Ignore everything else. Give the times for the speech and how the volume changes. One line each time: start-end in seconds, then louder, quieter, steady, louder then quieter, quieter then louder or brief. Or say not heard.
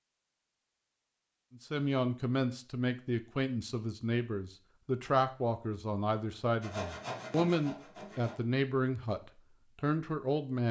1.5-10.6 steady.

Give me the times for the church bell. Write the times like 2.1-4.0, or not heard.
not heard.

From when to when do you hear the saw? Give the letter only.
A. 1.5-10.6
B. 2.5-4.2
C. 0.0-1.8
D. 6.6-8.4
D.